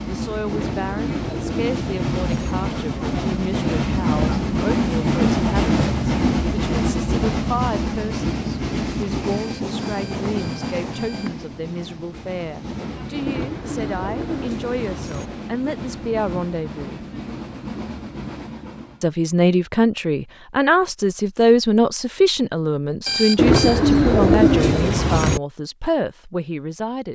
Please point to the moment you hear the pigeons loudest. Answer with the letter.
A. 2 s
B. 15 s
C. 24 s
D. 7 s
C.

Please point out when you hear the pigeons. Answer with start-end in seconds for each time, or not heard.
0.5-2.5, 13.2-15.3, 23.4-25.4.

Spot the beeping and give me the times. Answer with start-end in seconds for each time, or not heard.
9.3-11.3, 23.1-23.8.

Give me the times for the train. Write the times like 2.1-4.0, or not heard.
0.0-19.1.